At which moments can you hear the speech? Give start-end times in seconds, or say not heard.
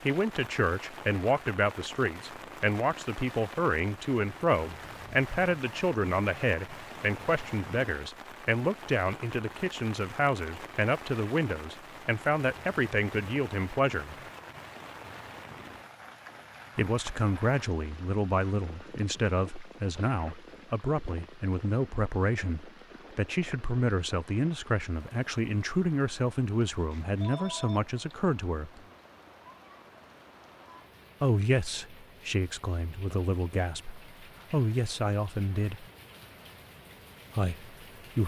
0.0-14.2, 16.8-28.8, 31.2-35.9, 37.4-38.2.